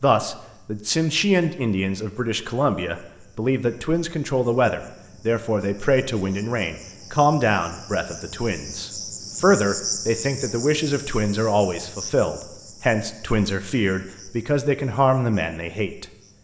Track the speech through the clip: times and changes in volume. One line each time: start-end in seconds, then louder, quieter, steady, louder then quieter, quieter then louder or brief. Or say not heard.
0.0-16.1 steady.